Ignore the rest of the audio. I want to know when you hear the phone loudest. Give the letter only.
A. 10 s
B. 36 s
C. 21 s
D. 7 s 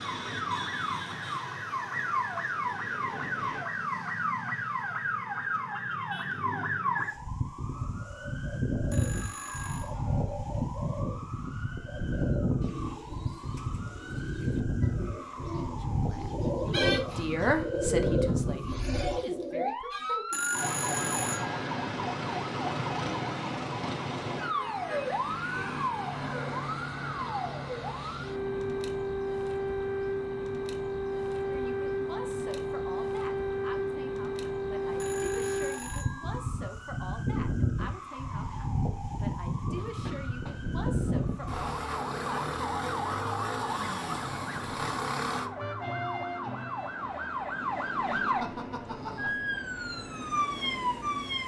C.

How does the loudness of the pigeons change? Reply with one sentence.
The loudness of the pigeons goes up.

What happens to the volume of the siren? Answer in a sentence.
The loudness of the siren stays about the same.